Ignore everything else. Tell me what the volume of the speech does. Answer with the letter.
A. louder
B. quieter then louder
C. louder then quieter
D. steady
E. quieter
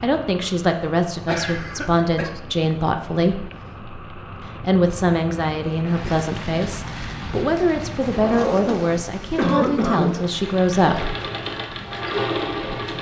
D.